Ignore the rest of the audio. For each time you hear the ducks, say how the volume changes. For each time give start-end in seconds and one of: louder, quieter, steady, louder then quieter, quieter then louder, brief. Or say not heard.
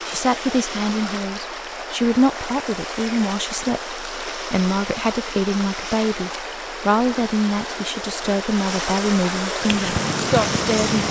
not heard.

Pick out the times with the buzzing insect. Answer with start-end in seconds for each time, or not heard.
9.6-11.0.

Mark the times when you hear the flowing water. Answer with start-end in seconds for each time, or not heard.
0.0-11.0.